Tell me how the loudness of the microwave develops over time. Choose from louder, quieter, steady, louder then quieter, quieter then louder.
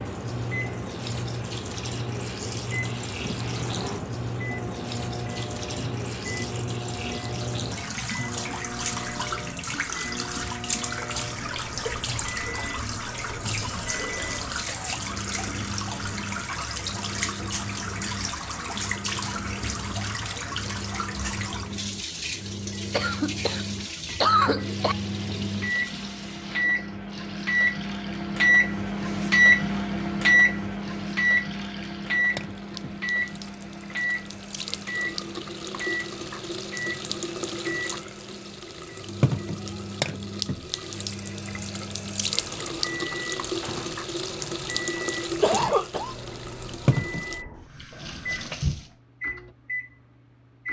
louder then quieter.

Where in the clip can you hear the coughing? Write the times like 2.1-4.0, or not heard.
13.6-15.0, 22.9-24.9, 45.4-46.1.